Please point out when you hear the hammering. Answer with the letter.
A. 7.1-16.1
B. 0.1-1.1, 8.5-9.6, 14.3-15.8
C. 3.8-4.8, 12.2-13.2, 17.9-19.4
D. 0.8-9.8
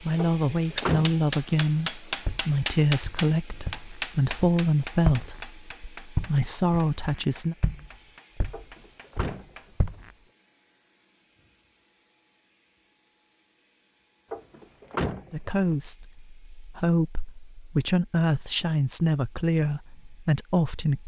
D.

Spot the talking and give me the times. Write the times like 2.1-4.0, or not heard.
0.0-7.5, 15.3-21.0.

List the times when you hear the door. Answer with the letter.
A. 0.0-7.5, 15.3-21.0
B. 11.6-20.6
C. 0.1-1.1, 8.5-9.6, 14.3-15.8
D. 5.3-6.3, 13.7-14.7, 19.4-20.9
C.